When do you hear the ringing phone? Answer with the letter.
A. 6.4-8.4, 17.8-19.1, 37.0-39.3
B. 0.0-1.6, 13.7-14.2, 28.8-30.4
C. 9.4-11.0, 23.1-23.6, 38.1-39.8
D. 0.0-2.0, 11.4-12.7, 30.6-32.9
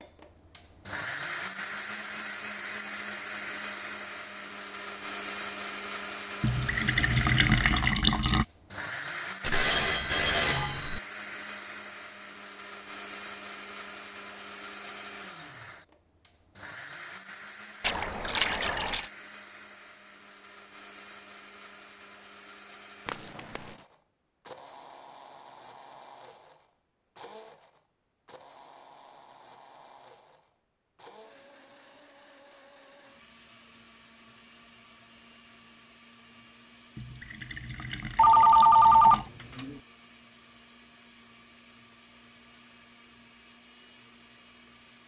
C.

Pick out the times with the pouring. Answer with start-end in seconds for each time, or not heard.
6.4-8.4, 17.8-19.1, 37.0-39.3.